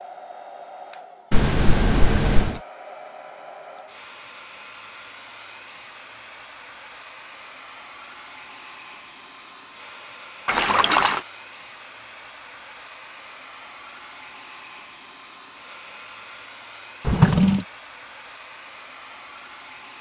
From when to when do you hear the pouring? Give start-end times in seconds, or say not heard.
1.3-2.6, 10.4-11.2, 17.1-17.6.